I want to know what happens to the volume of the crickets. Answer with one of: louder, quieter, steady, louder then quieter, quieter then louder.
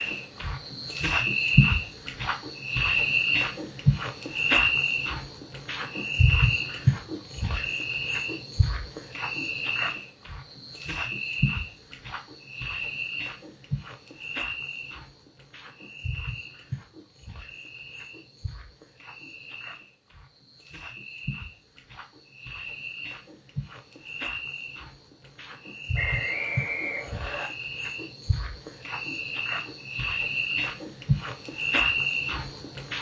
quieter then louder.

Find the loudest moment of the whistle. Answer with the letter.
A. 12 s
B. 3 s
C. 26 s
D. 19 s
C.